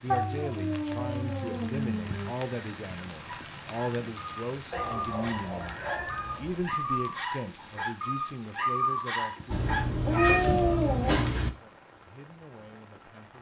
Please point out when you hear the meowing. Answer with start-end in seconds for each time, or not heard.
0.1-2.4, 4.7-6.6, 9.5-11.5.